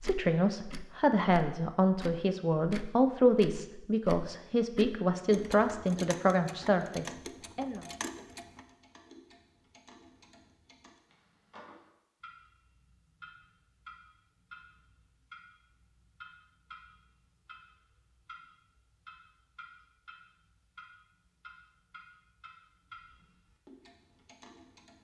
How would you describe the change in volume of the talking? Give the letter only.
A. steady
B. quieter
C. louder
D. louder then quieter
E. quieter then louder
A.